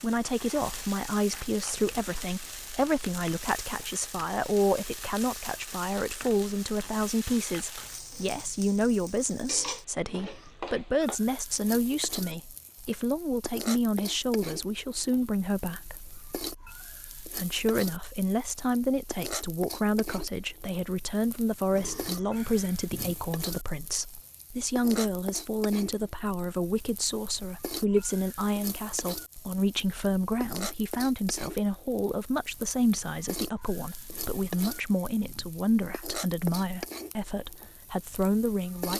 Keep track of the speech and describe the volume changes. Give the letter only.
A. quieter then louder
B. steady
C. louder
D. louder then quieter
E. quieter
B.